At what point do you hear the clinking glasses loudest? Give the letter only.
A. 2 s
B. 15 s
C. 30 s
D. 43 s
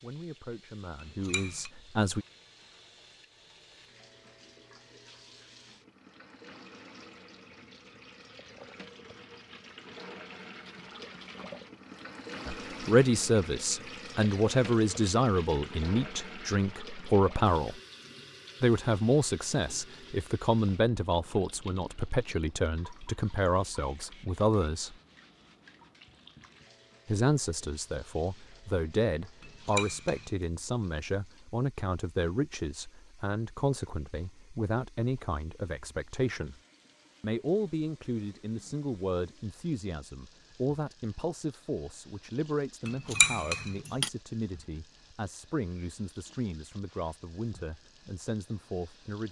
D.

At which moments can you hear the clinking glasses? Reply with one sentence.
The clinking glasses can be heard from 1.0 to 1.7 s, from 29.4 to 30.2 s and from 42.9 to 44.1 s.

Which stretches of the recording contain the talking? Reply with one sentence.
The talking can be heard from 0.0 to 2.2 s, from 12.4 to 17.8 s, from 18.6 to 24.9 s, from 27.1 to 36.5 s and from 37.2 to 49.2 s.